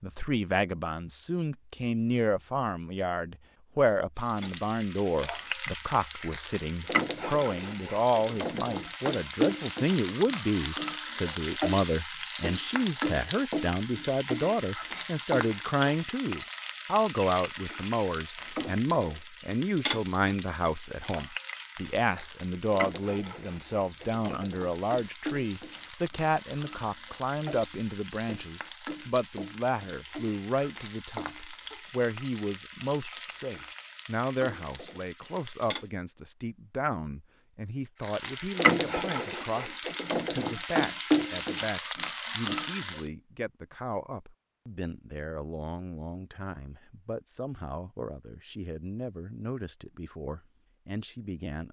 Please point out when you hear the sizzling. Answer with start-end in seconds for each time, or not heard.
4.2-35.9, 38.0-43.0.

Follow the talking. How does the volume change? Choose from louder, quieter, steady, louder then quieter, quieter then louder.
quieter.